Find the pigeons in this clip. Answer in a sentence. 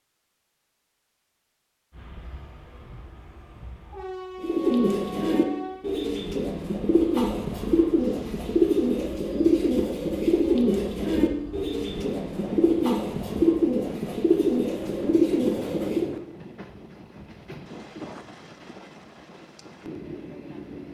The pigeons can be heard from 4.4 to 16.1 s.